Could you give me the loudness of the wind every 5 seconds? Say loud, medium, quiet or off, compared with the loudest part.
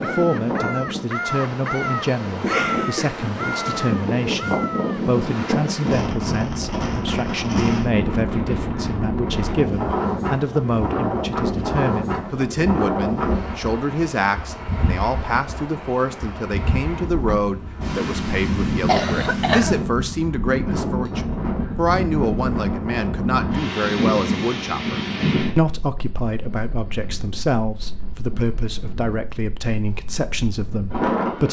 loud, loud, loud, loud, loud, medium, loud.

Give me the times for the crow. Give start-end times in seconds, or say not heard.
0.0-5.0.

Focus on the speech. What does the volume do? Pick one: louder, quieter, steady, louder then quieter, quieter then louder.
steady.